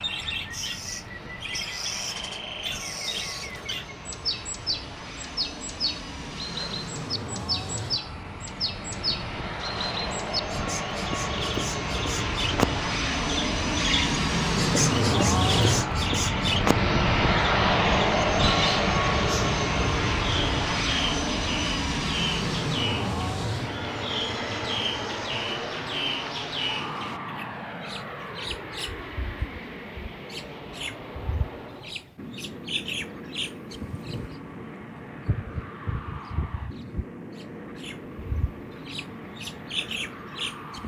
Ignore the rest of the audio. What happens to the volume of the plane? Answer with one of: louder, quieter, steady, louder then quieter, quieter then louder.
louder then quieter.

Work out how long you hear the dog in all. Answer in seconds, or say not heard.
not heard.